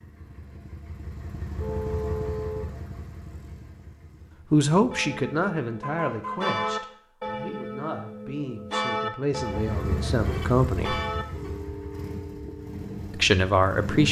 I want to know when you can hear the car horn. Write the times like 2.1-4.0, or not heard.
1.6-2.8, 5.7-6.6, 10.2-11.6.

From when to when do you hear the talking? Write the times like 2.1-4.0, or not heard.
4.5-11.0, 13.1-14.0.